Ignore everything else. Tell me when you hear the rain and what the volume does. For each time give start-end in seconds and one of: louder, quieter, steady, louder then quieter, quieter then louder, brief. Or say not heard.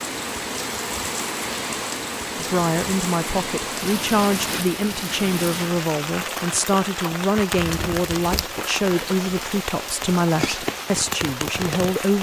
0.0-12.1 steady.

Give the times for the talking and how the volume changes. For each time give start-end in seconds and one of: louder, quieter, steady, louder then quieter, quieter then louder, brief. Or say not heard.
2.4-12.1 steady.